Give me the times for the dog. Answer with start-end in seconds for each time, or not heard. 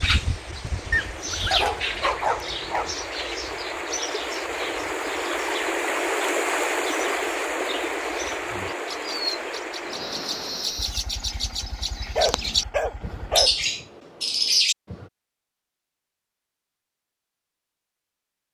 0.9-3.0, 10.8-13.7.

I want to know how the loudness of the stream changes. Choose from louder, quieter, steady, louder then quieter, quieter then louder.
louder then quieter.